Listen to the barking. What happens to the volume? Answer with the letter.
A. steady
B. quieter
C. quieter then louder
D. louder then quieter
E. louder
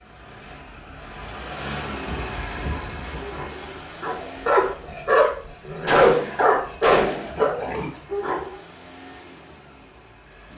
D.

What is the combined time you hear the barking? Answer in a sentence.
You can hear the barking for 6 seconds altogether.